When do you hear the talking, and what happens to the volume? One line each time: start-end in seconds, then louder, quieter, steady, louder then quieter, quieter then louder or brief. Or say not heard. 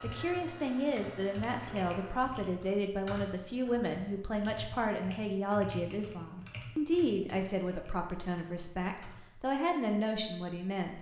0.0-10.9 steady.